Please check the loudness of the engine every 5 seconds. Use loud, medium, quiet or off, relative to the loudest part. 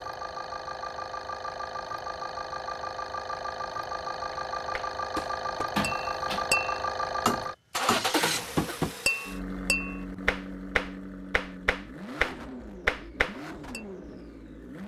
loud, loud, medium.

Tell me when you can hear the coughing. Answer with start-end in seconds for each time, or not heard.
8.1-8.8.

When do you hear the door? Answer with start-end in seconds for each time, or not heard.
5.8-6.5.